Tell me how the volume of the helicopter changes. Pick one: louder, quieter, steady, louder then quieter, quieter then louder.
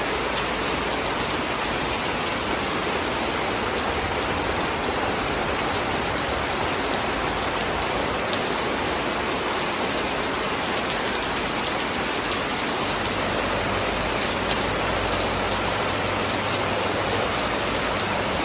steady.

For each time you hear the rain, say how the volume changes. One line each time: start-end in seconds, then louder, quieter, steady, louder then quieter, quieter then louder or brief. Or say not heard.
0.0-18.4 steady.